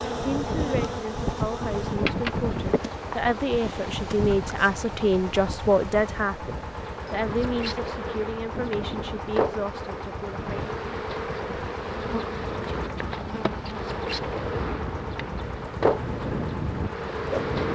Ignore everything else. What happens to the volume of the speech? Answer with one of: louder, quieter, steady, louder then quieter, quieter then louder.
louder then quieter.